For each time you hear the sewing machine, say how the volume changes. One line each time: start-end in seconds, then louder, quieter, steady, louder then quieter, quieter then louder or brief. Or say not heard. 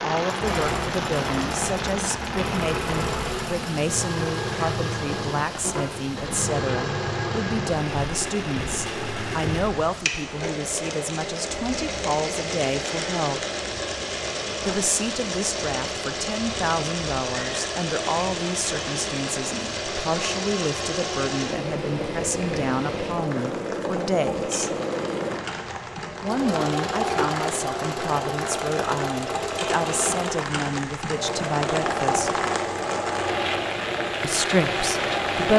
0.2-35.5 steady.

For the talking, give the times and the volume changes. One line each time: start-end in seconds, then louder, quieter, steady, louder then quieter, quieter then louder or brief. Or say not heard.
0.0-13.4 steady
14.7-24.7 steady
26.2-32.4 steady
34.2-35.5 brief.